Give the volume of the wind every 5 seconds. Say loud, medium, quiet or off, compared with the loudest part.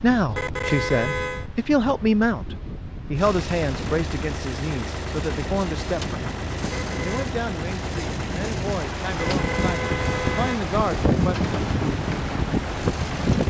quiet, medium, loud.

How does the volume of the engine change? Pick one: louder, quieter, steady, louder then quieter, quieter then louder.
steady.